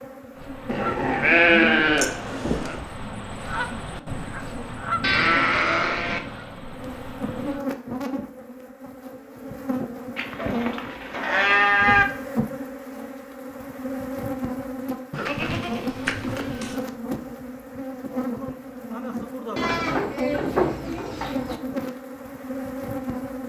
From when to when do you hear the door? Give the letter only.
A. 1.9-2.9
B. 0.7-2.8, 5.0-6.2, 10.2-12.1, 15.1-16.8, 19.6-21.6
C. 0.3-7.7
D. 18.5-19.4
A.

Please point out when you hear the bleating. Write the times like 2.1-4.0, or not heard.
0.7-2.8, 5.0-6.2, 10.2-12.1, 15.1-16.8, 19.6-21.6.